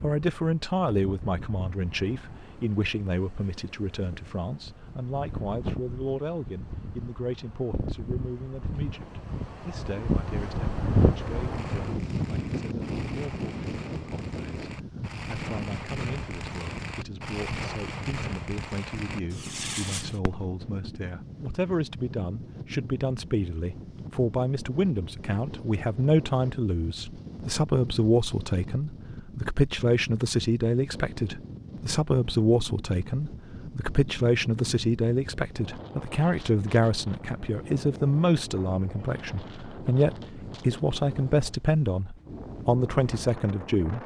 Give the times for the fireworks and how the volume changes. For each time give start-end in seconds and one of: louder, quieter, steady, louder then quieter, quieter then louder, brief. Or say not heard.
11.5-20.7 louder.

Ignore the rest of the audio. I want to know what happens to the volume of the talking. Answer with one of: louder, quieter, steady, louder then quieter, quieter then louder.
quieter then louder.